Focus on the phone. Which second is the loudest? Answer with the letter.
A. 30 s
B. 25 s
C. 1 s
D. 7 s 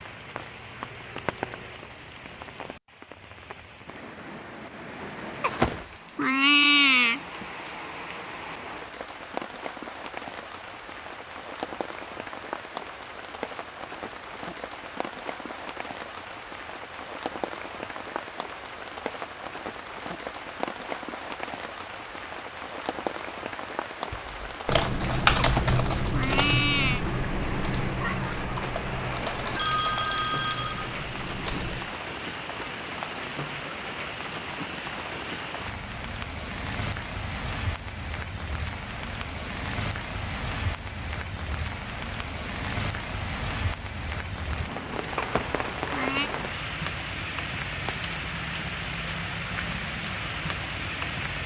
A.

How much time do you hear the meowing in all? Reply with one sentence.
You can hear the meowing for 5 seconds altogether.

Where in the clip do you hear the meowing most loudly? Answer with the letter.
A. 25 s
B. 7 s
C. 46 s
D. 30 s
B.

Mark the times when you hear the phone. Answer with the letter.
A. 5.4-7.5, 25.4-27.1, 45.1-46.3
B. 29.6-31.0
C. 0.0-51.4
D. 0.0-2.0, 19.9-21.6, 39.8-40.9
B.